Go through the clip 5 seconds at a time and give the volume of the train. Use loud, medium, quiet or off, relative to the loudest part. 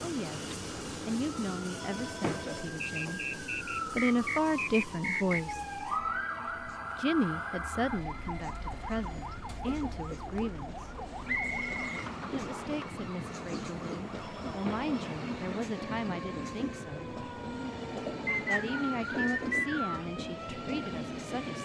loud, medium, loud, loud, loud.